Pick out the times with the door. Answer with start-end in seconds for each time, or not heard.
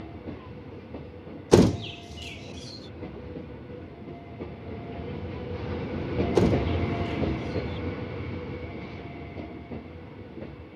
1.5-2.4, 6.3-7.8.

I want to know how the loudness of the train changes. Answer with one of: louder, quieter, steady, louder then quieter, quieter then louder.
louder then quieter.